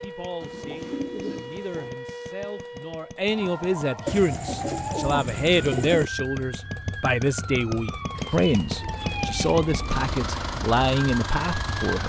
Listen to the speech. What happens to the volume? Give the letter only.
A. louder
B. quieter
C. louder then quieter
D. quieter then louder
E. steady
A.